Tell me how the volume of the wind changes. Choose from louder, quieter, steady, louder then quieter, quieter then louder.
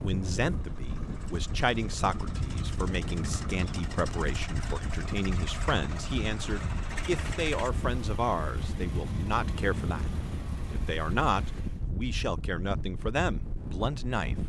steady.